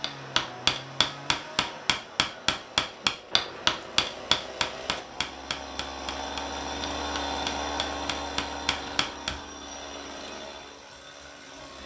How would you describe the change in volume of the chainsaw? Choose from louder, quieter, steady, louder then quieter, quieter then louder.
louder then quieter.